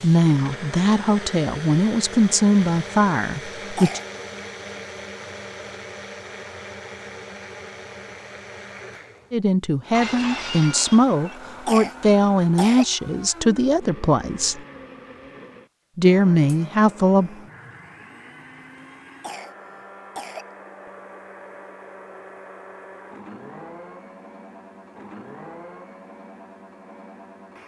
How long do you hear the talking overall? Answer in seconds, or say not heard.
11 s.